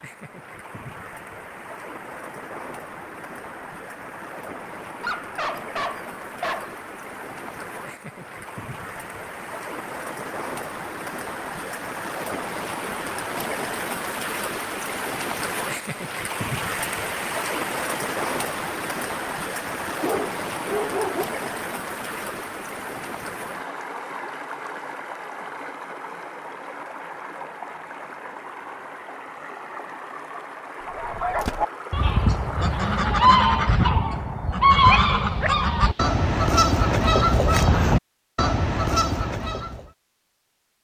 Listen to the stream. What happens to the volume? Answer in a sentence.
The volume of the stream goes up, then down.